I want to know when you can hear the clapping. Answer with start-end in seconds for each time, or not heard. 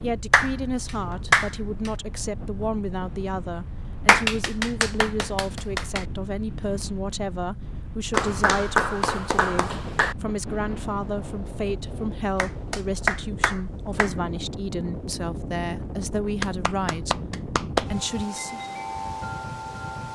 0.3-1.9, 4.0-6.0, 8.1-10.2, 12.3-14.1, 16.4-17.9.